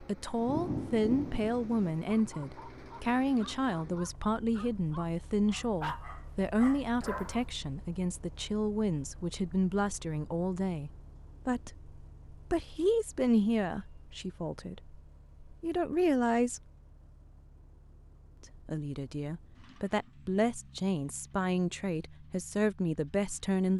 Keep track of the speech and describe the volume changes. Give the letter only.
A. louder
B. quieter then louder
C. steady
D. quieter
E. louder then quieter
C.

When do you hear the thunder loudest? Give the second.
1 s.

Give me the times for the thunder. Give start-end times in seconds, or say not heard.
0.3-1.9.